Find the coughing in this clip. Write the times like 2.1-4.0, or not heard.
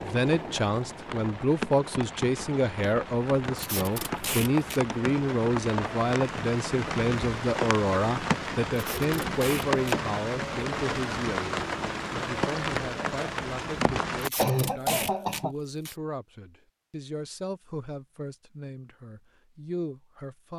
14.3-15.6.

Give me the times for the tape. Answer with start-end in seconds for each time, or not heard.
3.5-4.8, 8.8-9.9, 14.2-15.9.